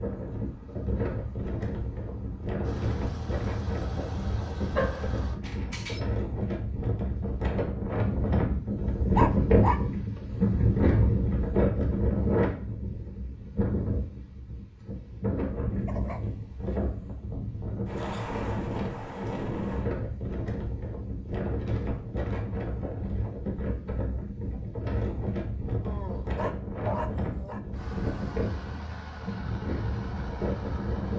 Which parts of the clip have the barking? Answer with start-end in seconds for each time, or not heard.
4.7-6.0, 9.2-10.2, 15.8-16.8, 25.9-27.6.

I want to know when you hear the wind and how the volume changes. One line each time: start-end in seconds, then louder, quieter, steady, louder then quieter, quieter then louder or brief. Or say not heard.
0.0-31.1 louder then quieter.